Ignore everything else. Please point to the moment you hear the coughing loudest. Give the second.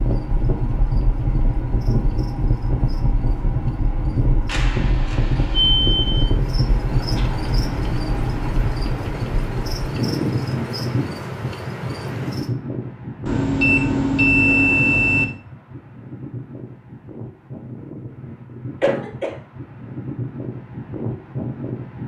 19 s.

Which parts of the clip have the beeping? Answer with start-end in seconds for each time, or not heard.
4.5-6.2, 13.2-15.2.